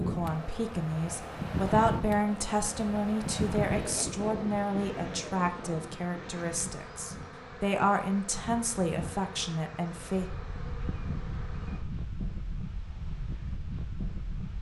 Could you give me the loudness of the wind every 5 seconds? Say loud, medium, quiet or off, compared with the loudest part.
loud, medium, medium.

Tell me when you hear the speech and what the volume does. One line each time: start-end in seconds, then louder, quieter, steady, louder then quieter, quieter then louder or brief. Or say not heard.
0.0-10.2 steady.